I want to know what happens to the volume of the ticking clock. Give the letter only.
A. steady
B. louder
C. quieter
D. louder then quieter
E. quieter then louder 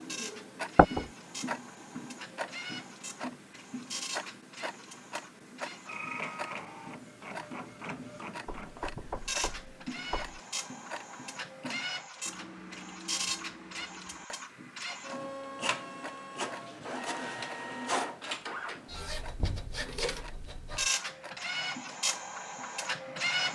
C.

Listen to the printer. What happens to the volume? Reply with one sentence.
The loudness of the printer goes up.